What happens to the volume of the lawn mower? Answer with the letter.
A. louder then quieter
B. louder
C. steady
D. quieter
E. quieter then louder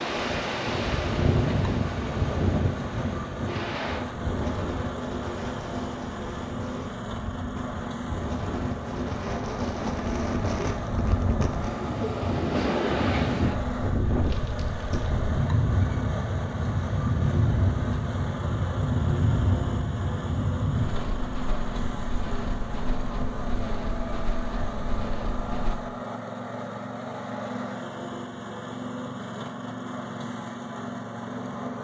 C.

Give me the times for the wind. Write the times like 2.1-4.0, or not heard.
0.0-25.8.